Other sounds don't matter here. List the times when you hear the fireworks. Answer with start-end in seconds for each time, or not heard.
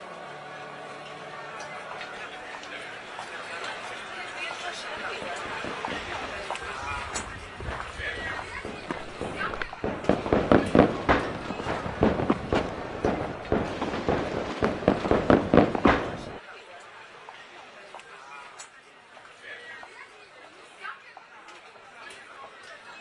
4.5-16.4.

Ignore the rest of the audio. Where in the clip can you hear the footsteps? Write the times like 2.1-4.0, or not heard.
6.0-15.9.